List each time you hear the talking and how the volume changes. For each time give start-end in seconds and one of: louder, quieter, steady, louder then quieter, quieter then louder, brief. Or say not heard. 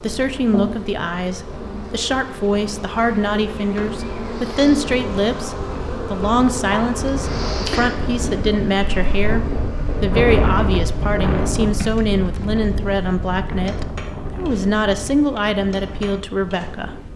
0.0-16.9 steady.